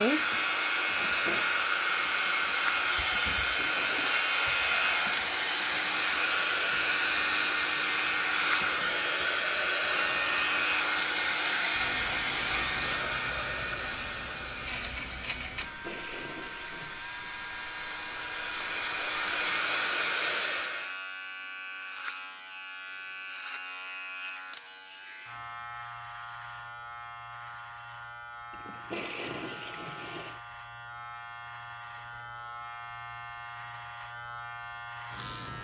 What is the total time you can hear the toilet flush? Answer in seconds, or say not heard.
4 s.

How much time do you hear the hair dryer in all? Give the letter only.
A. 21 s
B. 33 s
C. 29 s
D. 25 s
A.